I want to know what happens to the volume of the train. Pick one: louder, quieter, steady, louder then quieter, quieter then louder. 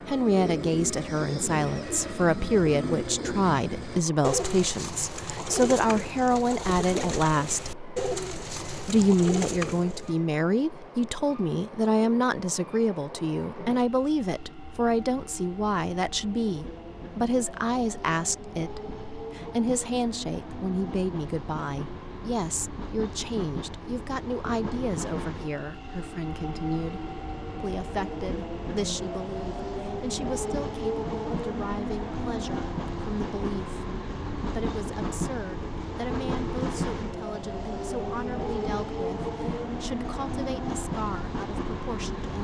louder.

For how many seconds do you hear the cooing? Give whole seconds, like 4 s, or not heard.
10 s.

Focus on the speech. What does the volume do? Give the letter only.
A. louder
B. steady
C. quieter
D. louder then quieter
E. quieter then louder
C.